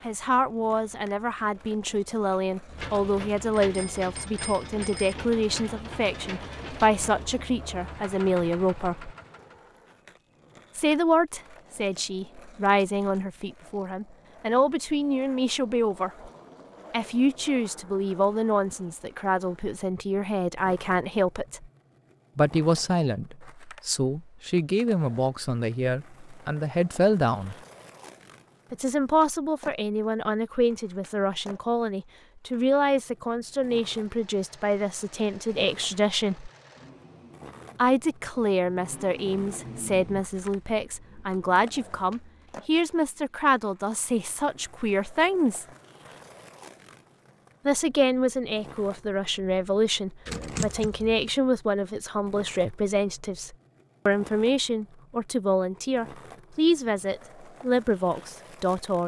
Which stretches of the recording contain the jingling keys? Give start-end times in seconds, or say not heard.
50.2-51.3.